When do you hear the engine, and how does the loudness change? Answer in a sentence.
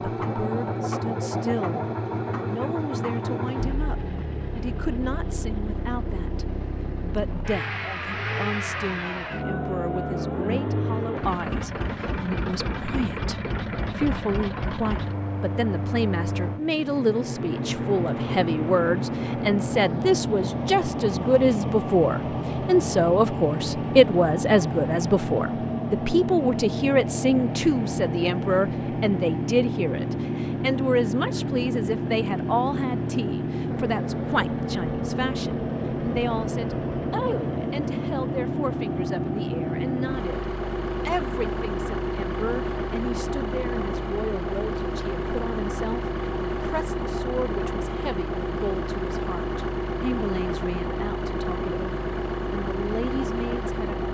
The engine can be heard from 0.0 to 54.0 s, at a steady volume.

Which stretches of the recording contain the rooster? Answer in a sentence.
The rooster can be heard from 8.7 to 10.2 s.